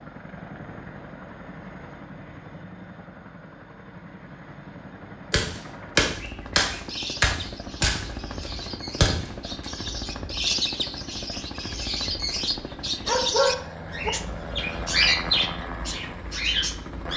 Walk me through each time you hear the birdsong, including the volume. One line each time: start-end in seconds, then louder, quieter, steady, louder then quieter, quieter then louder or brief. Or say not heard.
6.2-17.1 louder.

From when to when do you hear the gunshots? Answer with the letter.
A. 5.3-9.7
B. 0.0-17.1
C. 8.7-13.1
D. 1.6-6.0
A.